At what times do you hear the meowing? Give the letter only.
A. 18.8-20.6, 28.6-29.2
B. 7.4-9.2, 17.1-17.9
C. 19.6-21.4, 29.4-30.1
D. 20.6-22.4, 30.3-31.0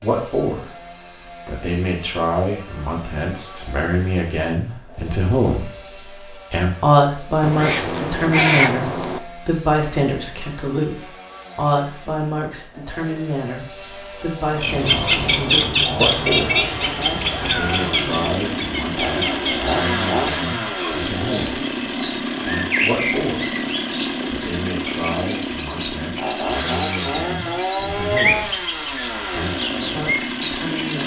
B.